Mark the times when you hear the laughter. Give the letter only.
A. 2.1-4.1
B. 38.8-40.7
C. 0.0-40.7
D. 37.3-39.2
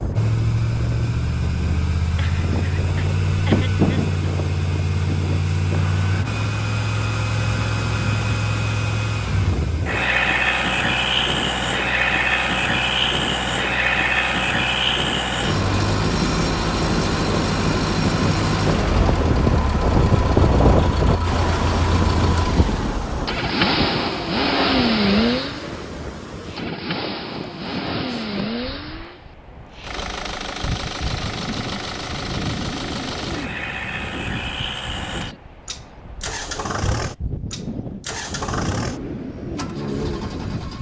A.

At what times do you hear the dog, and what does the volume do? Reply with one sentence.
You can't hear the dog here.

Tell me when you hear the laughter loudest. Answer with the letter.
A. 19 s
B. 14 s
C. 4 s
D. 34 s
C.